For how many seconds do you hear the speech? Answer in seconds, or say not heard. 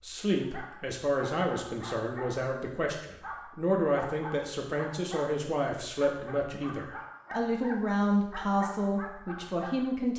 10 s.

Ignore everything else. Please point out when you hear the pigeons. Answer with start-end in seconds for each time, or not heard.
not heard.